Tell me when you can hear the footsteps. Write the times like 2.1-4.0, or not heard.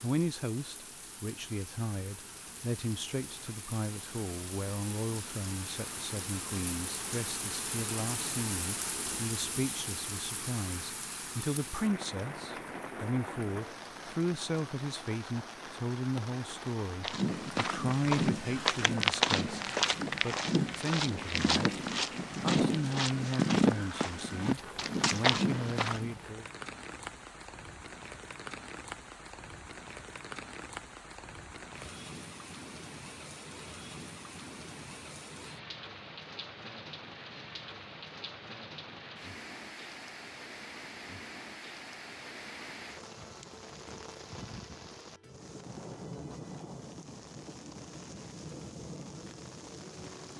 17.0-26.1.